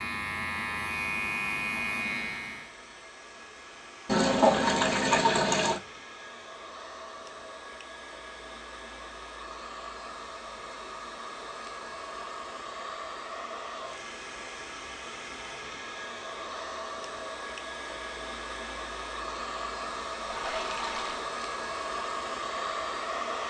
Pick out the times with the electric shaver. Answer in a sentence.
You can hear the electric shaver from 0.0 to 2.8 s.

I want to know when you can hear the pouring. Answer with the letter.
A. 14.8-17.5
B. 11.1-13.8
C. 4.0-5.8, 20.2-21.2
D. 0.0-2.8
C.